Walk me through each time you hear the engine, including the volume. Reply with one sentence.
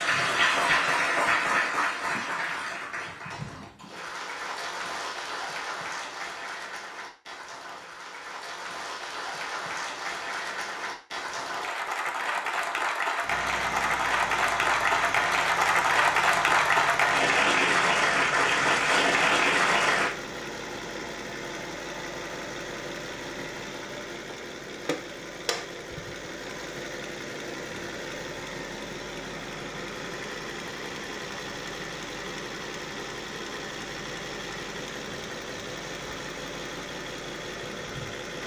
You can hear the engine from 13.2 to 38.4 s, at a steady volume.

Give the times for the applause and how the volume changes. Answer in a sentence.
You can hear the applause from 0.0 to 20.1 s, getting quieter then louder.